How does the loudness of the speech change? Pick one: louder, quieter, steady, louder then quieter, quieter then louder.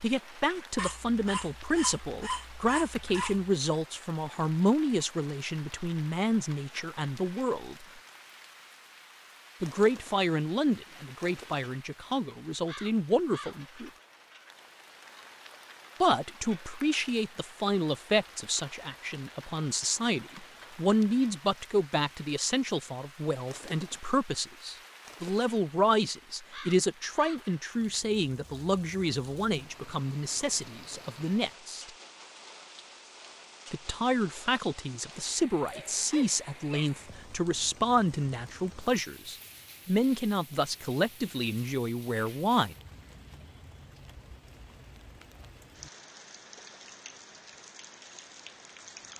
steady.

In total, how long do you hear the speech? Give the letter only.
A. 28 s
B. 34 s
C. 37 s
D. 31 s
C.